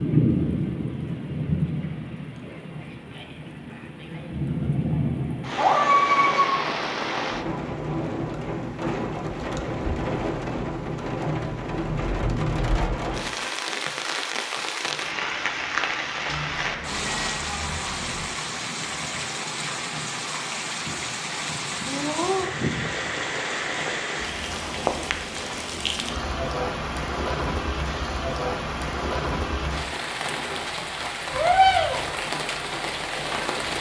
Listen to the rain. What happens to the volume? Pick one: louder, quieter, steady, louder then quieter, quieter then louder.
steady.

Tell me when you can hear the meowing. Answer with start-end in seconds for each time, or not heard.
5.5-6.7, 16.2-18.3, 31.3-32.1.